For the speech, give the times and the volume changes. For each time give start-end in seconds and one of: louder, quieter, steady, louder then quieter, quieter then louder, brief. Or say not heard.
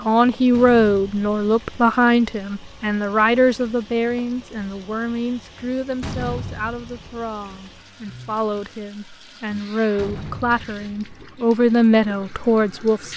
0.0-13.1 quieter then louder.